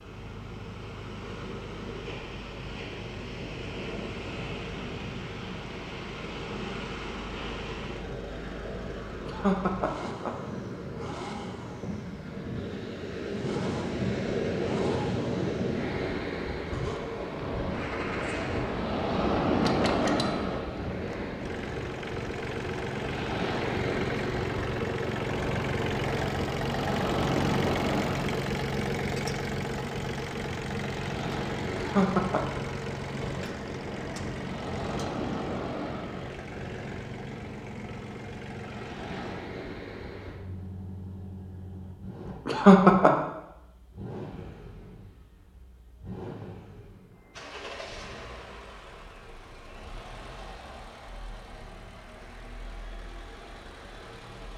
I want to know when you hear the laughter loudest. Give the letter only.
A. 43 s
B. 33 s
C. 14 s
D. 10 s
A.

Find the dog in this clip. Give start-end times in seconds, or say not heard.
not heard.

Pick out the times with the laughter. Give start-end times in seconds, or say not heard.
9.2-10.3, 31.8-32.6, 42.5-43.1.